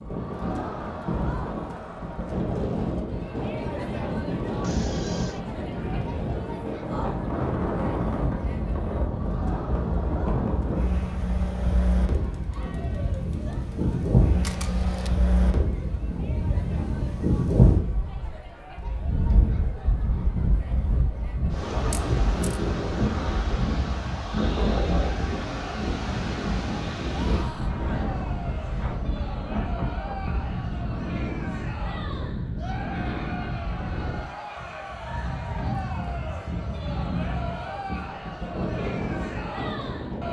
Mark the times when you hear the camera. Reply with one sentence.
You can hear the camera from 14.4 to 15.1 s and from 21.9 to 22.6 s.